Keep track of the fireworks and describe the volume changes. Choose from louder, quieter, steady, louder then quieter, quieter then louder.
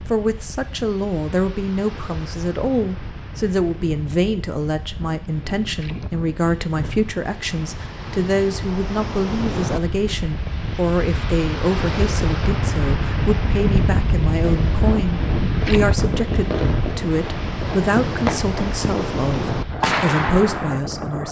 louder.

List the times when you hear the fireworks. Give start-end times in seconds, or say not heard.
14.4-20.8.